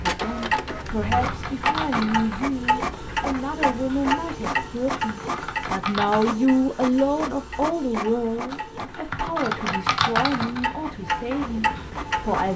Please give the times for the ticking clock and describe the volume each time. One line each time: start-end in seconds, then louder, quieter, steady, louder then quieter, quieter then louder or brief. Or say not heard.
0.0-12.5 quieter then louder.